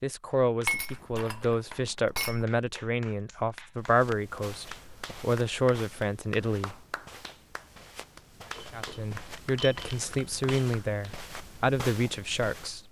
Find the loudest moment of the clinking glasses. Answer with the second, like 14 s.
1 s.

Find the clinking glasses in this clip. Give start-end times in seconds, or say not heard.
0.7-2.5, 8.5-10.7.